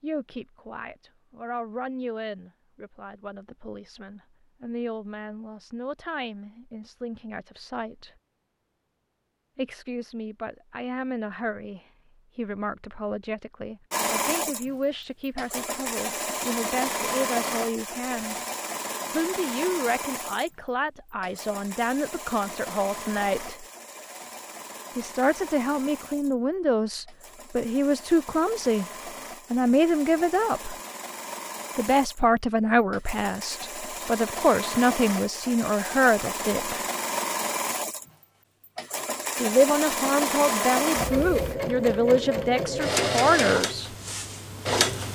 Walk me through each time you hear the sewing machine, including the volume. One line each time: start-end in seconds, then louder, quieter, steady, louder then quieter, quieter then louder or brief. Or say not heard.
13.9-45.1 quieter then louder.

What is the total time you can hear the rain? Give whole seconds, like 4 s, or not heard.
not heard.